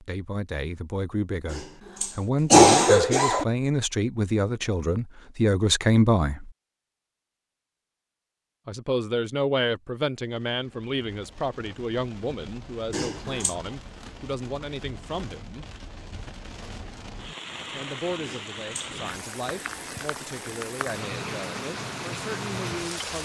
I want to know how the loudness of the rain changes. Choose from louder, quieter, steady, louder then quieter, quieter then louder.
louder.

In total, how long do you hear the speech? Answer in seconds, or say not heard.
19 s.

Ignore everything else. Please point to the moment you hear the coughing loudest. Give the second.
3 s.